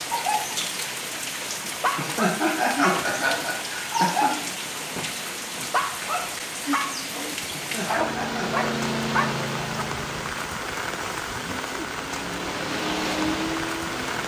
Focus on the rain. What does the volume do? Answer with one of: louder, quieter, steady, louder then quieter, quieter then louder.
steady.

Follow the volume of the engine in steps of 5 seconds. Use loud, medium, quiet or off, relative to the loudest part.
off, loud, loud.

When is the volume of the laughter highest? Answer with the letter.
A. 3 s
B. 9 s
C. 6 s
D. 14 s
A.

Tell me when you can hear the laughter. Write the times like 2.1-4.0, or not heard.
1.9-4.3, 7.5-8.7.